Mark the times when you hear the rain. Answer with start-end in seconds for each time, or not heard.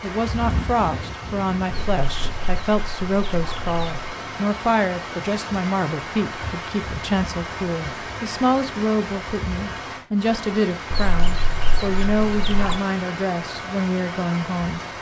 0.0-14.9.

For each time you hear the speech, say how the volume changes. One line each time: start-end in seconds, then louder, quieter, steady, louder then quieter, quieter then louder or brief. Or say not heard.
0.0-14.8 steady.